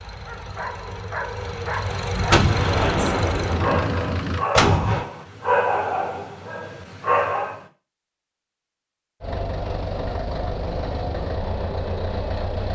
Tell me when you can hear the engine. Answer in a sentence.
The engine can be heard from 0.0 to 4.5 s and from 9.2 to 12.7 s.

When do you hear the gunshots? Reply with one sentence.
The gunshots can be heard from 2.3 to 5.0 s.